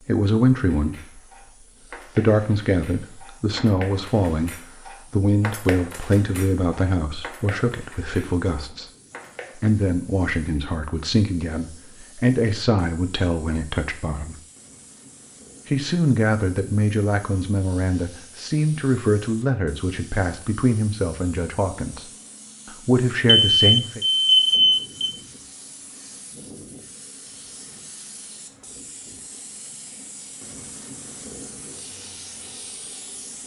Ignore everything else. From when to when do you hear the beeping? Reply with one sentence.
The beeping can be heard from 23.2 to 25.1 s.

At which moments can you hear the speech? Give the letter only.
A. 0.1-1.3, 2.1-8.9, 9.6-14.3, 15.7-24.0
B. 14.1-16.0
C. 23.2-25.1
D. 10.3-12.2
A.